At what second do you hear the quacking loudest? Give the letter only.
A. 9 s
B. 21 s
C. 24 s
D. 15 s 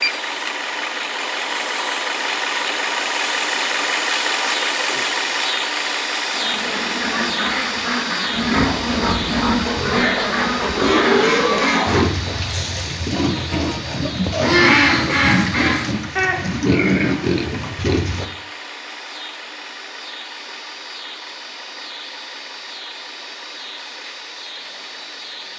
D.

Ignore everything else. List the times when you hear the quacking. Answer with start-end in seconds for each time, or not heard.
6.2-16.4.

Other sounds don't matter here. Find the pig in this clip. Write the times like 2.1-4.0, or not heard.
8.3-18.2.